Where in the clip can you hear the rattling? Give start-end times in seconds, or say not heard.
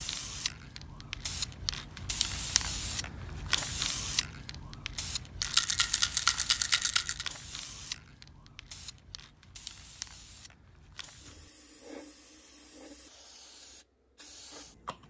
5.4-7.2.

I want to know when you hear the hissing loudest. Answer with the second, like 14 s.
4 s.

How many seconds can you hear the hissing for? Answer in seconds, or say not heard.
15 s.